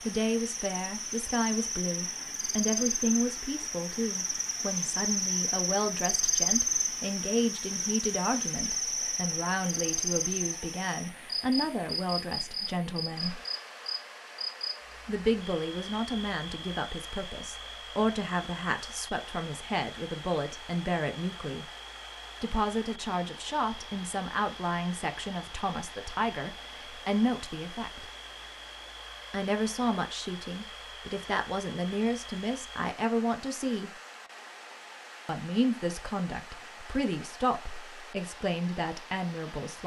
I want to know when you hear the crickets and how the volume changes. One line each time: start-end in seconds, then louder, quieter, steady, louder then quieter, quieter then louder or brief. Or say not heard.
0.0-32.9 quieter.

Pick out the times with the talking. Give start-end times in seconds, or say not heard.
0.0-13.4, 15.1-21.6, 22.4-28.1, 29.3-33.9, 35.2-39.8.